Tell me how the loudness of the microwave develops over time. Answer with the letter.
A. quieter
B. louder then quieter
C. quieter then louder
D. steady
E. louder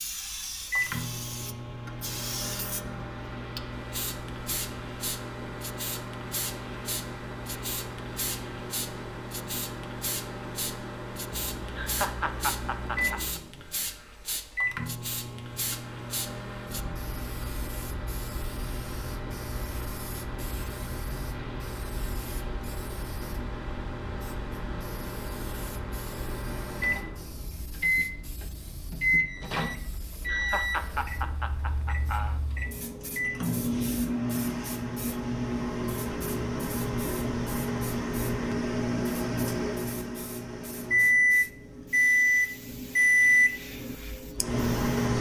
E.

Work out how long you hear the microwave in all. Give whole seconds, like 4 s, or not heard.
45 s.